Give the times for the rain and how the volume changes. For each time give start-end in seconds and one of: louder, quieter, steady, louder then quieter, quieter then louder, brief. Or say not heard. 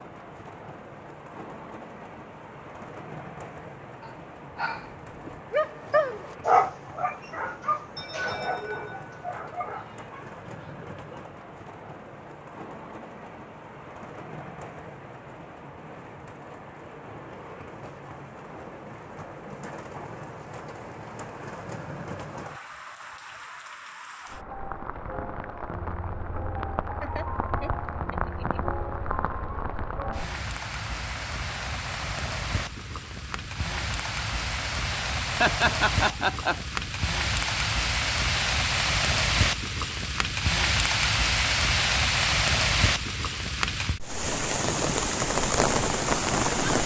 0.0-46.8 louder.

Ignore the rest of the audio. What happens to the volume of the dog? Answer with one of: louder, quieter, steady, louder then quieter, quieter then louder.
louder then quieter.